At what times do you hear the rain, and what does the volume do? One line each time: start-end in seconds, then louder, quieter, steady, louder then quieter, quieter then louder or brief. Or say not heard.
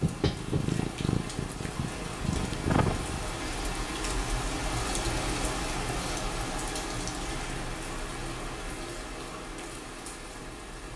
0.0-10.9 louder then quieter.